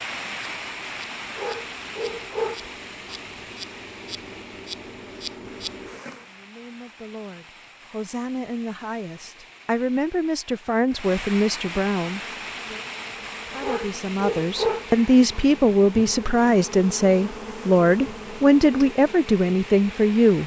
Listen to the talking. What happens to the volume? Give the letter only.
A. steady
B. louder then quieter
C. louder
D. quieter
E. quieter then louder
C.